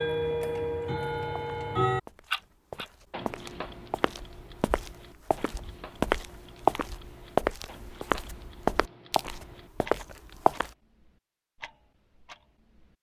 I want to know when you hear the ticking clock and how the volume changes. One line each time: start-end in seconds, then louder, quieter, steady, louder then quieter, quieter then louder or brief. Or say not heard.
0.0-12.9 quieter.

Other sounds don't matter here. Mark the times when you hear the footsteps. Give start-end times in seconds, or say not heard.
0.8-10.7.